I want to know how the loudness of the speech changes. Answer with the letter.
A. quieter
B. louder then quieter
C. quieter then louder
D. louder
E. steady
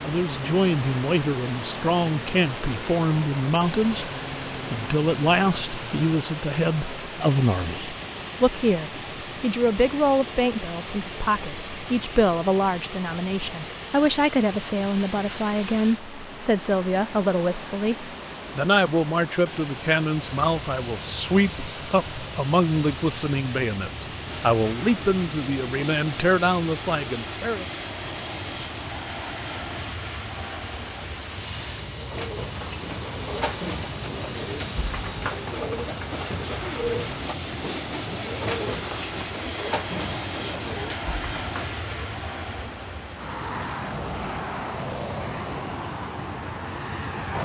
E.